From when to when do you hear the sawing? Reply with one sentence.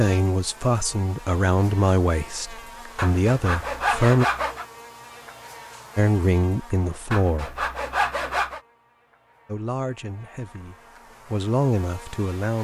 The sawing can be heard from 3.0 to 4.7 s and from 7.1 to 8.6 s.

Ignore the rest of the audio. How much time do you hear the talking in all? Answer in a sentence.
You can hear the talking for 9 seconds altogether.